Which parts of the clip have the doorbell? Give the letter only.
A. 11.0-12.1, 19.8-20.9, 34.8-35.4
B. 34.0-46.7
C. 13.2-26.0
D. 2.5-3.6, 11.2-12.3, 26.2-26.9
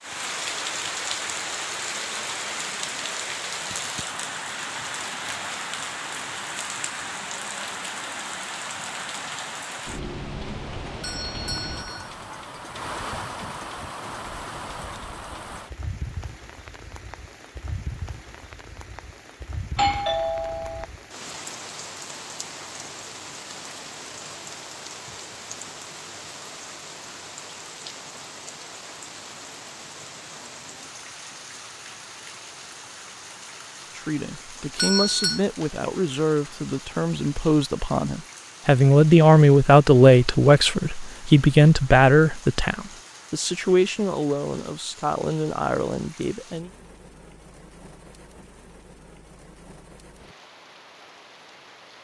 A.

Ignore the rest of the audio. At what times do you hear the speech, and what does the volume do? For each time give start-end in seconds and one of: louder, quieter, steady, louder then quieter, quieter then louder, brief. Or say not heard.
34.0-46.7 louder then quieter.